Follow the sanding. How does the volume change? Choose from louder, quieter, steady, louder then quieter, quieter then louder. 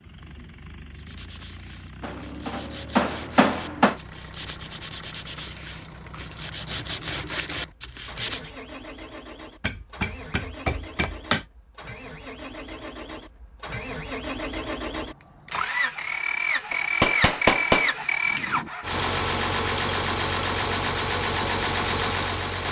louder.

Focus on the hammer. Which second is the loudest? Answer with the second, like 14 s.
18 s.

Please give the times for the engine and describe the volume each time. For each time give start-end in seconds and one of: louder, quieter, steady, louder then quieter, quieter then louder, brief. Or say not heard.
0.0-22.6 louder.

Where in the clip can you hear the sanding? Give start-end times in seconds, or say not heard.
0.9-8.5.